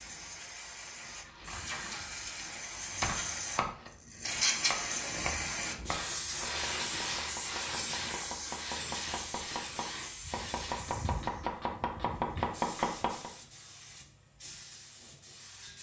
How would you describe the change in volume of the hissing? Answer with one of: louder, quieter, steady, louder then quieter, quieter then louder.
louder then quieter.